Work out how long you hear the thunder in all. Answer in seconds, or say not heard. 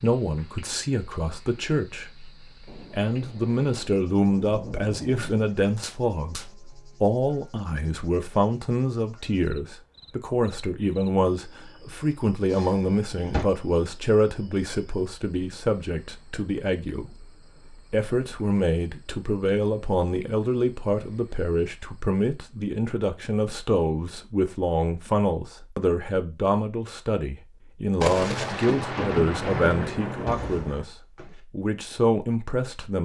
7 s.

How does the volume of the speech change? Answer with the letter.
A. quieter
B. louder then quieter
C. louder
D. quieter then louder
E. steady
E.